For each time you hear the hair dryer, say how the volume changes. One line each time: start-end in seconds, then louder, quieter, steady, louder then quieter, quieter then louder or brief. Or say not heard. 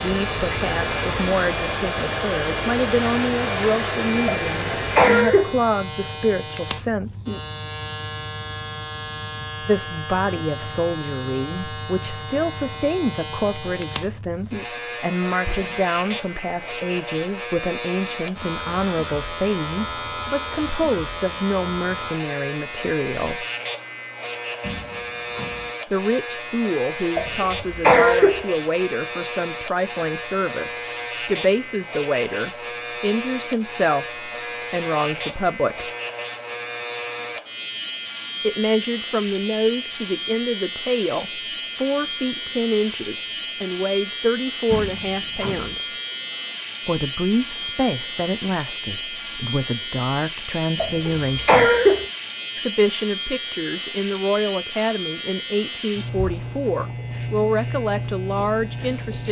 0.0-5.2 steady.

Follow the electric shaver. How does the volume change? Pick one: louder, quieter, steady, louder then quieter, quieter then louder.
steady.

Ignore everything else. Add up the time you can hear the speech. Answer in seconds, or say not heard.
50 s.